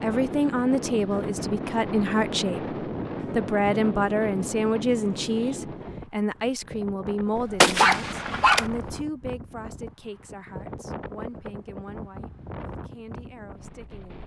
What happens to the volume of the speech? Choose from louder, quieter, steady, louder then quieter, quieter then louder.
quieter.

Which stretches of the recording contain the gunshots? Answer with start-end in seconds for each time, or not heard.
7.6-8.7.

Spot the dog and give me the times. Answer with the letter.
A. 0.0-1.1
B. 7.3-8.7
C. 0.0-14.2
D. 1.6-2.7
B.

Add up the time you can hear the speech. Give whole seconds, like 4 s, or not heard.
14 s.